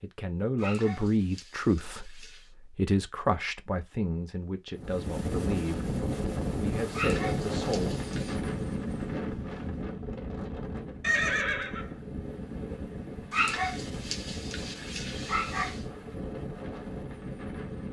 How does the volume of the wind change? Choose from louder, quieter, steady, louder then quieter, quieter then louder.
quieter.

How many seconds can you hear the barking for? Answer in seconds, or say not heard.
6 s.